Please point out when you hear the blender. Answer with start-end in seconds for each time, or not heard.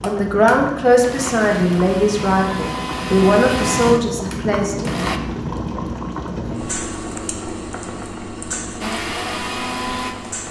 0.0-5.2, 8.8-10.4.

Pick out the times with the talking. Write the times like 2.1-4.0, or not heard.
0.0-4.9.